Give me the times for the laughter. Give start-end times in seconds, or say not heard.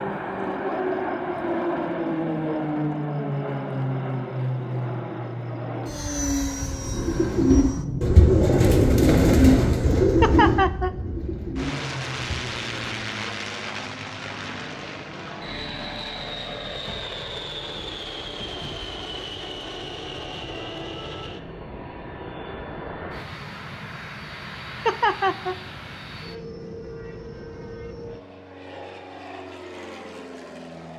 10.2-10.9, 24.9-25.6.